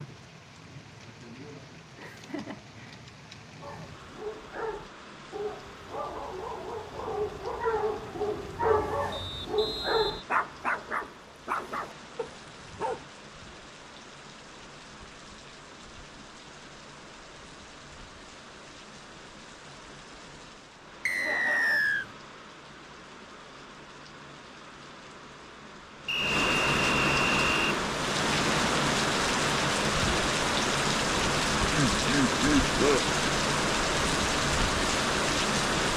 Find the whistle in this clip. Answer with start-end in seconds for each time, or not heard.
9.1-10.3, 21.1-22.1, 26.1-27.8.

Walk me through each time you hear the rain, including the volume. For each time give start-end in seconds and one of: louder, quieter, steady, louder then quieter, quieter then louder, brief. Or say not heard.
0.0-35.9 louder.